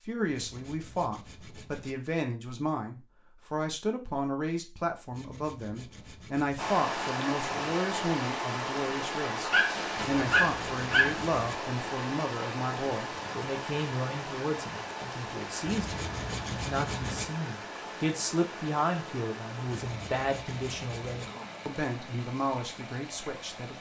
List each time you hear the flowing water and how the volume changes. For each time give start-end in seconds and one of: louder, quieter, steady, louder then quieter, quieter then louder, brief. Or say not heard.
6.5-23.7 quieter.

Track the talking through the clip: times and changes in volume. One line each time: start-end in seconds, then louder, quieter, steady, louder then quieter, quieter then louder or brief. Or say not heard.
0.0-23.7 steady.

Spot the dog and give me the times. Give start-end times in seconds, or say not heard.
9.5-11.2.